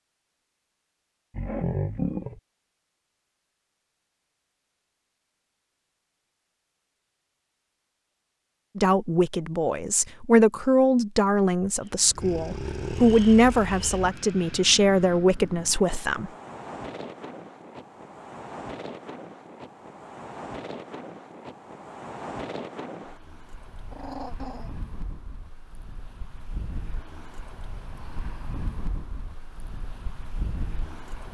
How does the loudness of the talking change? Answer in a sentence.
The loudness of the talking stays about the same.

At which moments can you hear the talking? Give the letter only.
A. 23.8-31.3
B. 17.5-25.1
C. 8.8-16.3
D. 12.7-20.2
C.